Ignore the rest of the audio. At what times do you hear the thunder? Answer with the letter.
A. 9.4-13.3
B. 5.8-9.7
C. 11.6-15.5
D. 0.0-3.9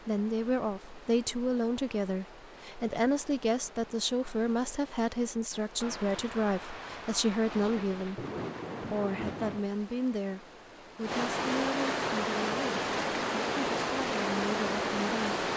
B.